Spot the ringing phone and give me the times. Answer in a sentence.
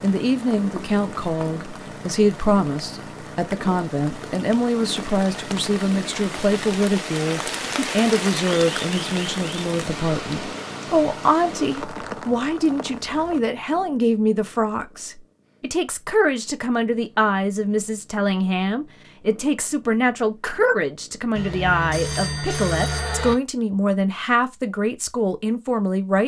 The ringing phone can be heard from 21.4 to 23.4 s.